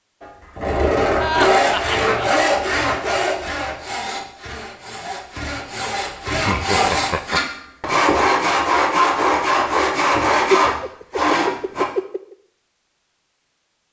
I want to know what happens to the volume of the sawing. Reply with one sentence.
The loudness of the sawing goes down, then up.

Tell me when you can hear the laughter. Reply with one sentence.
You can hear the laughter from 1.2 to 2.4 s, from 6.2 to 7.4 s and from 10.6 to 12.3 s.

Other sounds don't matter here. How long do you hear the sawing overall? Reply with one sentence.
The sawing can be heard for 12 seconds in total.